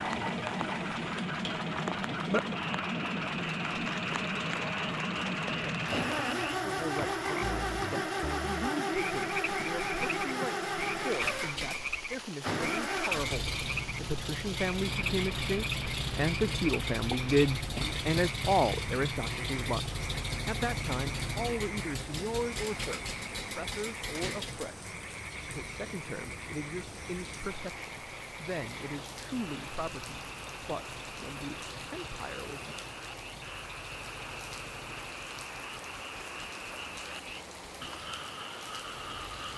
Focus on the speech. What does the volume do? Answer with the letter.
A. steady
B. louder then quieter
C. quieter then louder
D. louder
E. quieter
B.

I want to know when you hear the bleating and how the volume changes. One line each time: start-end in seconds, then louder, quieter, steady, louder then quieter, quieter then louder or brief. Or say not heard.
not heard.